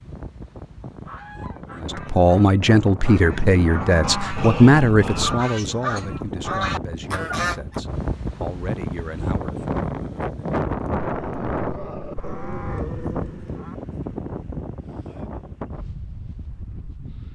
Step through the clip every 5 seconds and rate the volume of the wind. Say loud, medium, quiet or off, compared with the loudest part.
medium, loud, loud, medium.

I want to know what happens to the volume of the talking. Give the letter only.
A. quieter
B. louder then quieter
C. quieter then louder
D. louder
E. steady
A.